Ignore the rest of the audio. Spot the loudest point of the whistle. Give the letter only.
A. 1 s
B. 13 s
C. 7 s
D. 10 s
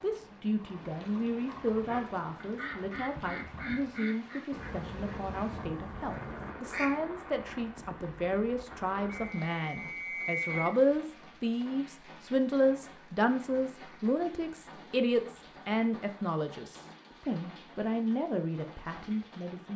D.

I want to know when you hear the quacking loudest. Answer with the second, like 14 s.
7 s.